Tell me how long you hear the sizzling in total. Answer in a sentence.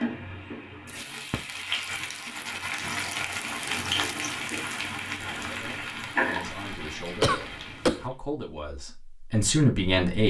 You can hear the sizzling for 8 seconds altogether.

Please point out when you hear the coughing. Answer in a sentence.
You can hear the coughing from 7.2 to 8.1 s.